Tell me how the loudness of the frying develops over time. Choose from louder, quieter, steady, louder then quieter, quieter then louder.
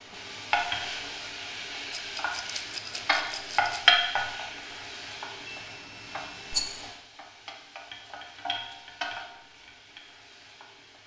louder then quieter.